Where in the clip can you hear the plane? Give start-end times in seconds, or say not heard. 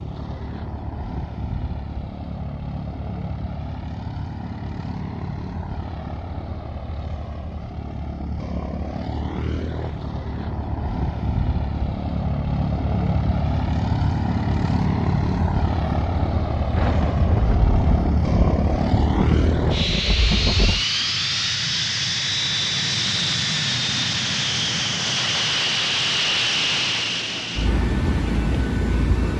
0.0-29.3.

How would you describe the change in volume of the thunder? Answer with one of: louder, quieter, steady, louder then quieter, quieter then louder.
steady.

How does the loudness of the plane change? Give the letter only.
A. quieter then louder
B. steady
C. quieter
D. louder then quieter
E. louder
E.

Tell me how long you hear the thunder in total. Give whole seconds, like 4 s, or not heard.
4 s.